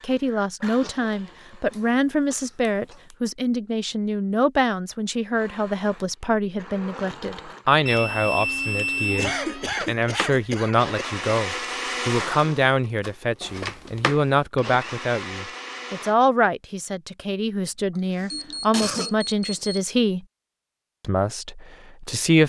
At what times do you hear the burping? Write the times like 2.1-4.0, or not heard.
not heard.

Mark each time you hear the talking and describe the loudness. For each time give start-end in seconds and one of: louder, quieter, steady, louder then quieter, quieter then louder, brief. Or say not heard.
0.0-20.2 steady
21.0-22.4 brief.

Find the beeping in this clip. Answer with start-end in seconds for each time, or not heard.
1.7-3.1, 7.8-9.3, 18.3-19.9.